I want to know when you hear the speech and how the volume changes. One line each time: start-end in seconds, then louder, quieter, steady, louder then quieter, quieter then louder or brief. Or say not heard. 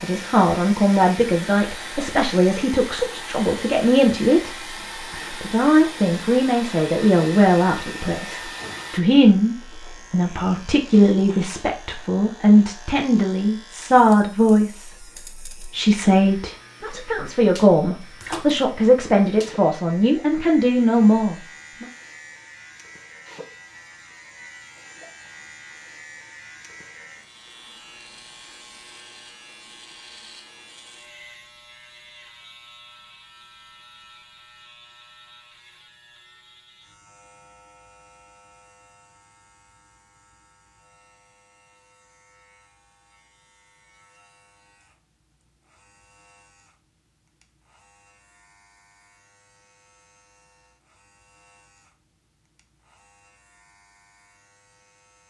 0.0-21.9 steady.